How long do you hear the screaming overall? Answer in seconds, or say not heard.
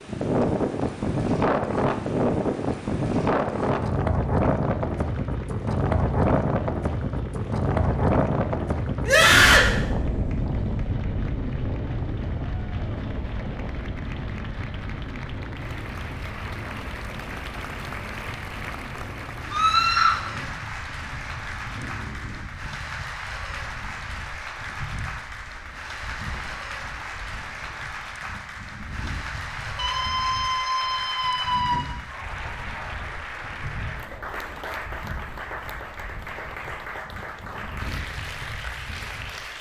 3 s.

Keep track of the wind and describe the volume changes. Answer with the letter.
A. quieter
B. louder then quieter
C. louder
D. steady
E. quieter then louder
A.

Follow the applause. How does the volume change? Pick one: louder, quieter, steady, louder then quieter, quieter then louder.
louder.